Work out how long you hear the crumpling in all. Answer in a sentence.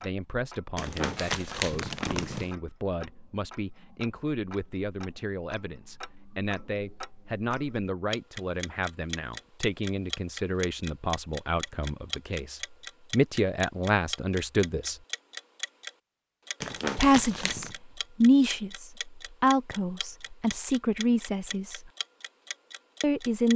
You can hear the crumpling for 3 seconds altogether.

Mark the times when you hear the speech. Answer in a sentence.
The speech can be heard from 0.0 to 15.0 s, from 16.9 to 21.9 s and from 23.0 to 23.5 s.